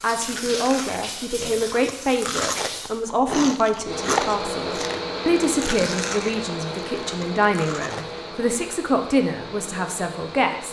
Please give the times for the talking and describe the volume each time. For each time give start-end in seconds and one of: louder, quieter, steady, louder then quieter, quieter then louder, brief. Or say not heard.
0.0-10.6 steady.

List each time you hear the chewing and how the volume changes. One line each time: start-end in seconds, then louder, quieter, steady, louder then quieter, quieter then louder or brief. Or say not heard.
0.1-8.2 louder then quieter.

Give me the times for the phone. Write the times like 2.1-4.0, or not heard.
not heard.